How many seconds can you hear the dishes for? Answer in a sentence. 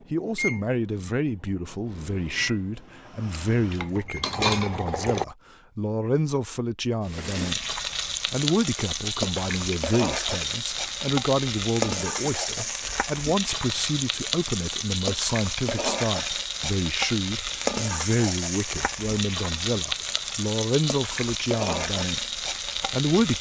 The dishes can be heard for 2 seconds in total.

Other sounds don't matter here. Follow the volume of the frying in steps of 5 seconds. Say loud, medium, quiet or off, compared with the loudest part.
off, loud, loud, loud, loud.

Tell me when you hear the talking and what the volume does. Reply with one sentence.
The talking can be heard from 0.1 to 23.3 s, at a steady volume.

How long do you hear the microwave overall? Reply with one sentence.
You can hear the microwave for 4 seconds altogether.